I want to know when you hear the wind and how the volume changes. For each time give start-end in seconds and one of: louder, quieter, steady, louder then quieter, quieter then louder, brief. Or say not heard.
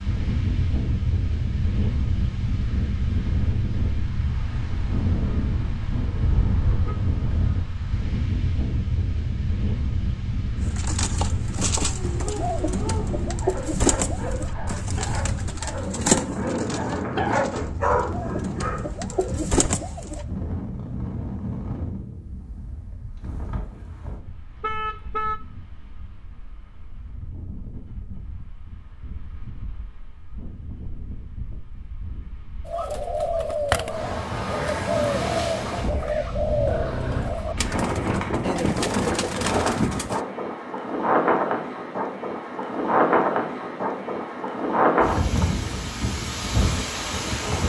0.0-47.6 quieter then louder.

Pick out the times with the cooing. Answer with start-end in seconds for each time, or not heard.
10.6-20.2, 32.6-40.2.